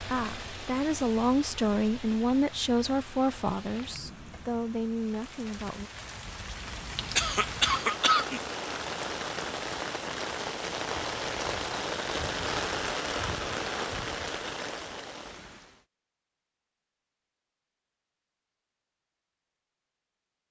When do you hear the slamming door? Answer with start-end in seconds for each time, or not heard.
not heard.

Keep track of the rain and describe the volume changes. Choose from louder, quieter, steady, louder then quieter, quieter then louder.
louder.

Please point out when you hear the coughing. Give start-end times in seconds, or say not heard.
7.2-8.4.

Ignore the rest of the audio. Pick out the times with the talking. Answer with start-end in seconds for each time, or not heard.
0.0-5.9.